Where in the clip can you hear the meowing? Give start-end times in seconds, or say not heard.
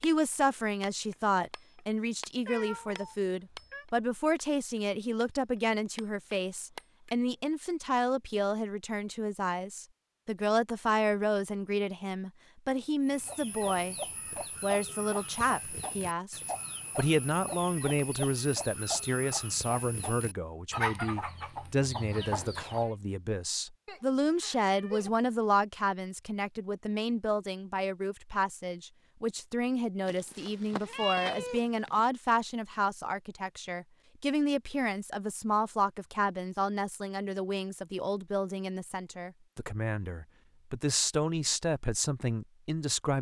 2.5-3.9, 23.9-25.1, 30.1-32.0.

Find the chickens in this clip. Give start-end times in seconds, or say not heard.
13.0-22.9.